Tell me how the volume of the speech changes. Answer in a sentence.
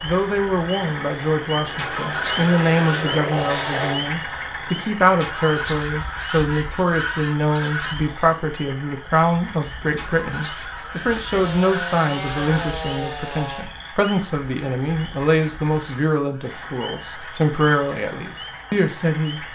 The volume of the speech stays about the same.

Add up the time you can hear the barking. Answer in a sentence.
The barking can't be heard in this clip.